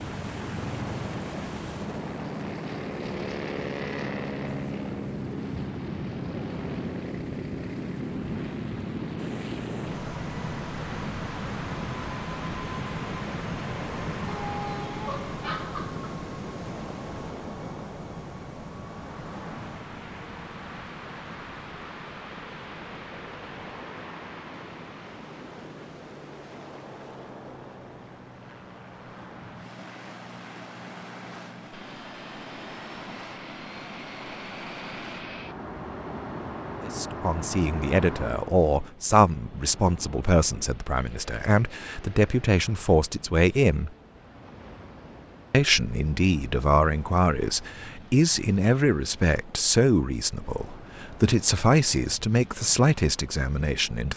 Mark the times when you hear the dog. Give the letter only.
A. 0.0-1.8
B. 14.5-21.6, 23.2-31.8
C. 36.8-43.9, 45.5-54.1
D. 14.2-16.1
D.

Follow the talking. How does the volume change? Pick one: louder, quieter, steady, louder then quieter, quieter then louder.
steady.